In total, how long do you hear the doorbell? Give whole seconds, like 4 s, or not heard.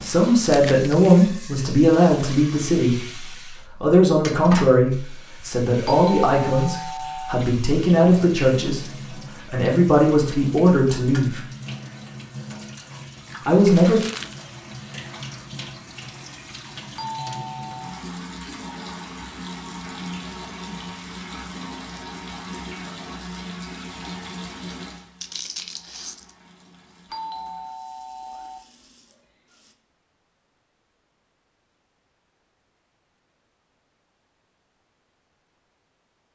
4 s.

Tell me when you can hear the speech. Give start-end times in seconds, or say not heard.
0.0-3.0, 3.8-8.8, 9.4-11.4, 13.4-14.0.